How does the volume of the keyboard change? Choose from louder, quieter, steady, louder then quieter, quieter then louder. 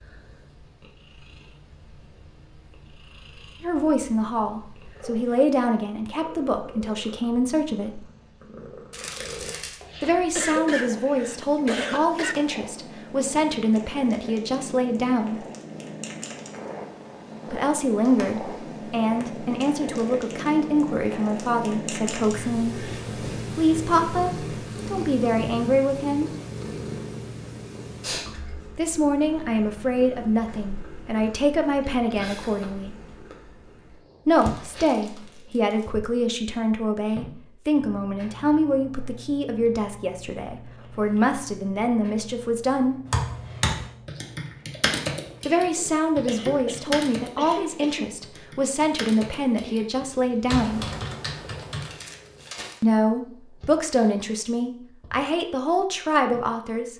quieter then louder.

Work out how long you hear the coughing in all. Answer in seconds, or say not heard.
4 s.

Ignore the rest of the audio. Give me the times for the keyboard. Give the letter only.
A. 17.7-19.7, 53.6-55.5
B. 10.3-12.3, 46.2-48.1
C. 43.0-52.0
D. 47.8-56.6
C.